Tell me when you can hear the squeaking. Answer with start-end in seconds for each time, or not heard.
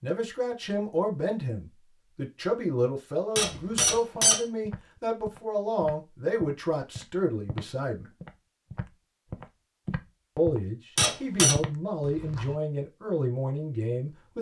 3.4-4.4, 10.9-11.6.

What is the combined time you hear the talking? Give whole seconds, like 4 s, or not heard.
12 s.